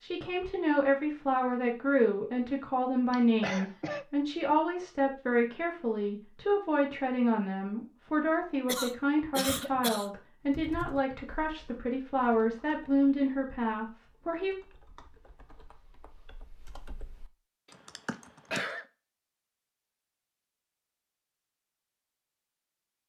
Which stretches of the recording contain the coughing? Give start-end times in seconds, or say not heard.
3.1-4.0, 8.7-10.1, 17.6-18.9.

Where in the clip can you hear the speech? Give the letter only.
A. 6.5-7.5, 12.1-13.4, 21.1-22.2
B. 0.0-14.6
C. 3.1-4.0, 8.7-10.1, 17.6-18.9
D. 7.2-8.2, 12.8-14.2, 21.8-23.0
B.